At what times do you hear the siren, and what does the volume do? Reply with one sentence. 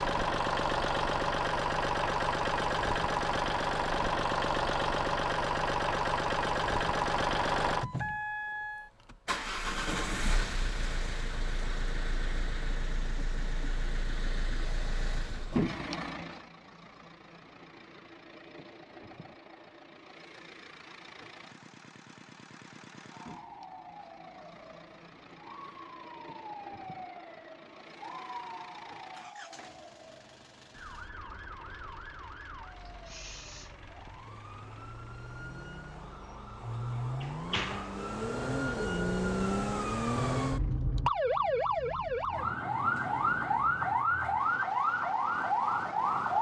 The siren can be heard from 23.1 to 46.3 s, getting louder.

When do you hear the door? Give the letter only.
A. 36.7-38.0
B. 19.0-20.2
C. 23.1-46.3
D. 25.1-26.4
A.